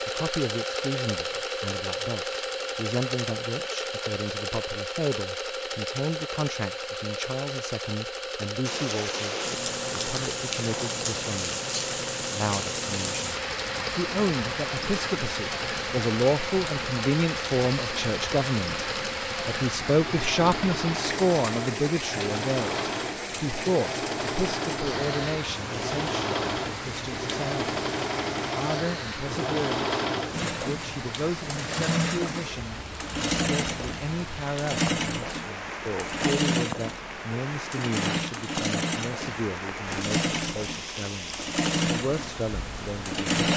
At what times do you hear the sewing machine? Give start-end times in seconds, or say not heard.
0.0-43.5.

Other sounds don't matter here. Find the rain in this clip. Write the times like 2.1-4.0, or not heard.
8.7-43.4.